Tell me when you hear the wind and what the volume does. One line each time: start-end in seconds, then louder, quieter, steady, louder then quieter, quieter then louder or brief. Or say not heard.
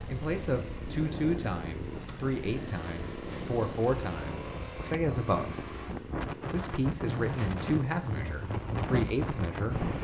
0.0-9.9 louder.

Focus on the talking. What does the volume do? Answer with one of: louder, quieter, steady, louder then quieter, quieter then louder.
steady.